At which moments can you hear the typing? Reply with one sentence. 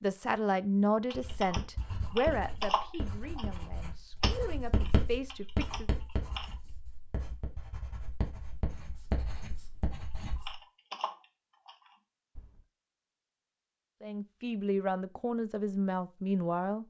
You can hear the typing from 1.1 to 6.5 s and from 10.2 to 12.7 s.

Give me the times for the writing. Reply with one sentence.
You can hear the writing from 1.1 to 10.6 s.